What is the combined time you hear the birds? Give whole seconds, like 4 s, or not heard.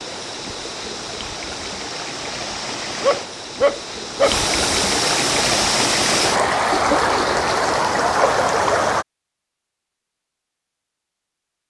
not heard.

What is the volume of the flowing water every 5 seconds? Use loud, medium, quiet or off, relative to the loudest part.
medium, loud, off.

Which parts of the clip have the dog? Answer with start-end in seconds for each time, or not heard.
3.0-4.3.